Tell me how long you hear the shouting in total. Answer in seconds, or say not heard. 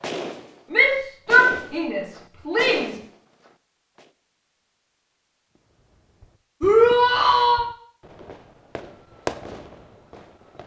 3 s.